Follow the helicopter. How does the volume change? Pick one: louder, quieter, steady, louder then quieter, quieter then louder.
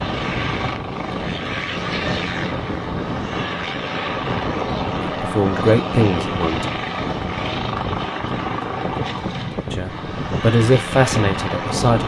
steady.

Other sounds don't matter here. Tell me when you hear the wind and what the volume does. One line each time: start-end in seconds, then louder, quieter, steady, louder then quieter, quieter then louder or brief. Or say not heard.
0.0-12.0 steady.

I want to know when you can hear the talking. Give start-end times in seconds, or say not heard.
5.0-6.7, 9.7-12.0.